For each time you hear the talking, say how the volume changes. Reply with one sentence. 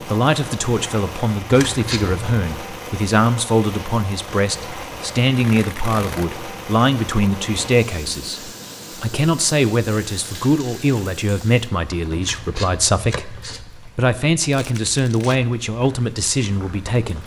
You can hear the talking from 0.0 to 17.2 s, at a steady volume.